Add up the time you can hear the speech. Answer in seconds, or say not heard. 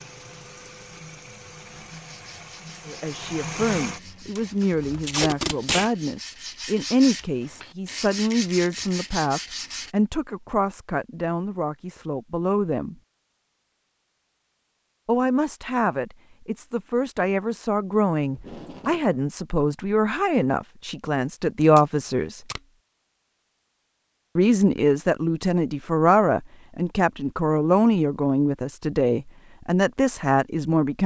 24 s.